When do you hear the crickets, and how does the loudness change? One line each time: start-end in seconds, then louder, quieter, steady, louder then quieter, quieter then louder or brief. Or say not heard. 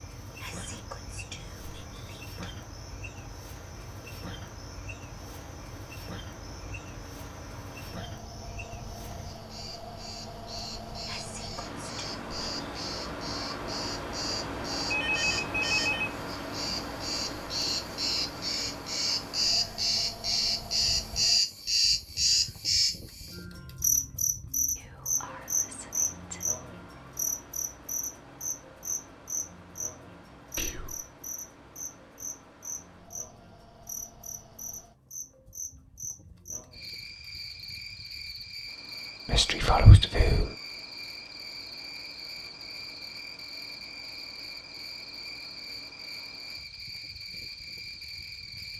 0.0-48.7 louder then quieter.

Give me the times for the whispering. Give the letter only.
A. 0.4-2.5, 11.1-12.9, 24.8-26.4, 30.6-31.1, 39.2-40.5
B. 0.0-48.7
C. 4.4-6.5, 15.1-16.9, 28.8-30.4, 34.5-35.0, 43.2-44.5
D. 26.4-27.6
A.